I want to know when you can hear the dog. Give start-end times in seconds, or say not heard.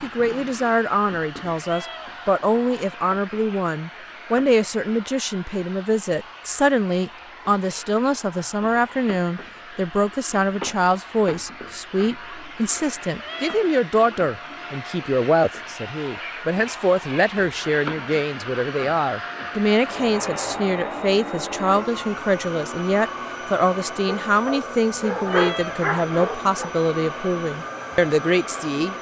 24.1-26.8.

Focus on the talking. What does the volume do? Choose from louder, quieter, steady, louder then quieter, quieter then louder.
steady.